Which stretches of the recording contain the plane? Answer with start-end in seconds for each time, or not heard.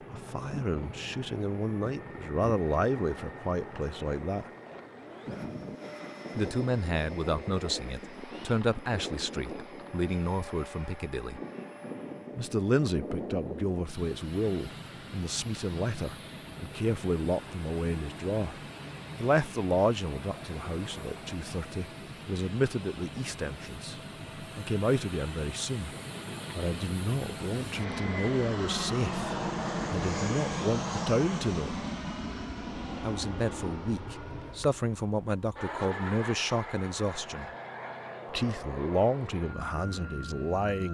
0.0-40.8.